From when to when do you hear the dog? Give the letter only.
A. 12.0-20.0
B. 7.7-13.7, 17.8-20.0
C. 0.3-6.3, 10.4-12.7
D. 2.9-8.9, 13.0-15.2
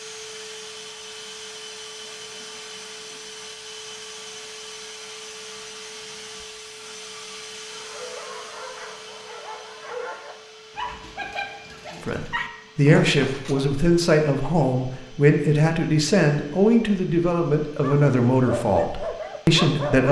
B.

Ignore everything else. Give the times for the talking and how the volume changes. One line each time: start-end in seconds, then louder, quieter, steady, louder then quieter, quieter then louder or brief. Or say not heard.
12.0-20.0 steady.